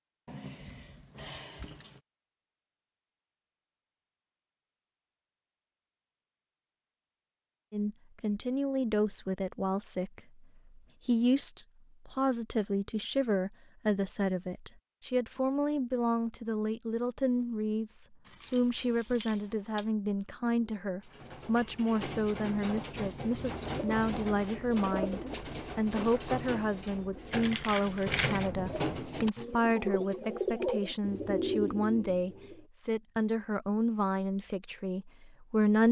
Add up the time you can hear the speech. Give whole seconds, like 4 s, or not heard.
28 s.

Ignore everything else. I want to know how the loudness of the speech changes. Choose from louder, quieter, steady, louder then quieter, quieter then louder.
steady.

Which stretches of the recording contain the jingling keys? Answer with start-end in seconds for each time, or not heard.
0.2-2.0, 18.2-19.9, 27.3-28.5.